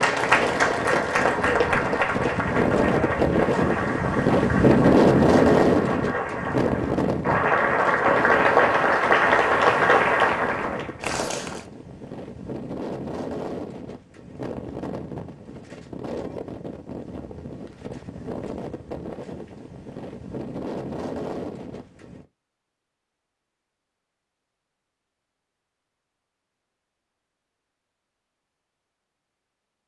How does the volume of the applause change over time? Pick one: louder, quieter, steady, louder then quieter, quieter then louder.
quieter then louder.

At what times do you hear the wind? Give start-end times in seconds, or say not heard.
0.0-22.2.